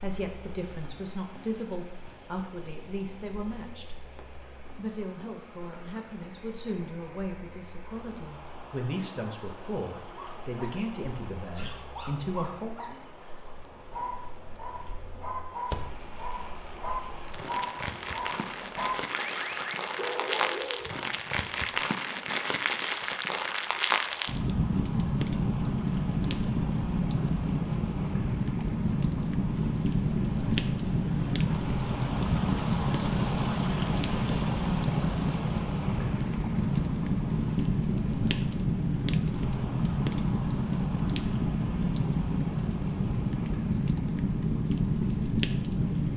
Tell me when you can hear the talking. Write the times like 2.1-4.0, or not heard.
0.0-4.1, 4.8-12.8.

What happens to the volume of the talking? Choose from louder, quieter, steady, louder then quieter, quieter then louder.
steady.